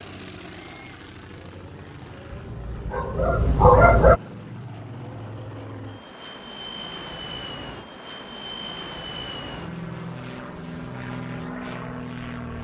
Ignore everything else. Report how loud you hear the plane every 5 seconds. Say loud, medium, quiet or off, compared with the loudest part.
medium, loud, loud.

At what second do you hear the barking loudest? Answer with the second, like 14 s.
4 s.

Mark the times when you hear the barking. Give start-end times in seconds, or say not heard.
2.3-4.2.